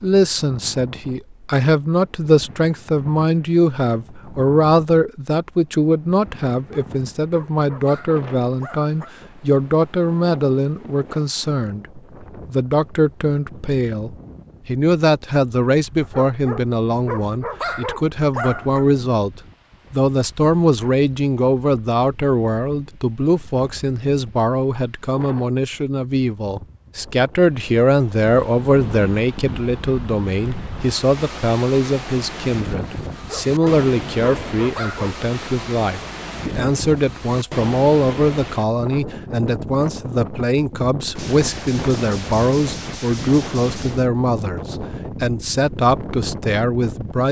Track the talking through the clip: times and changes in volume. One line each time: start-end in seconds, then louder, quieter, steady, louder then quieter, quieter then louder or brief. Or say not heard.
0.0-47.2 steady.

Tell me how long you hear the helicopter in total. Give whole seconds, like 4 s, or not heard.
not heard.